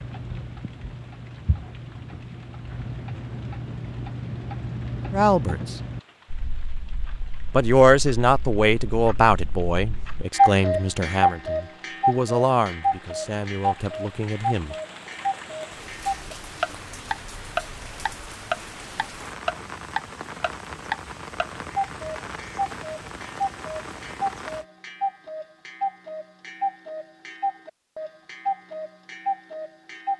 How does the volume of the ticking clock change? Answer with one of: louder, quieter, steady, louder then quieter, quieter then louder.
louder then quieter.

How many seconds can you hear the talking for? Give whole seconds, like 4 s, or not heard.
8 s.